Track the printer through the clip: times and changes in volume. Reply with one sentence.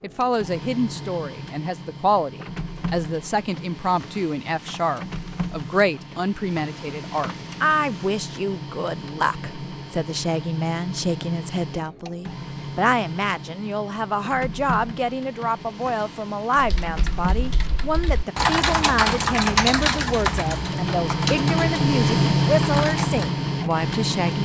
The printer can be heard from 0.0 to 24.4 s, getting louder.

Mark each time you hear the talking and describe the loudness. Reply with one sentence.
You can hear the talking from 0.0 to 24.4 s, at a steady volume.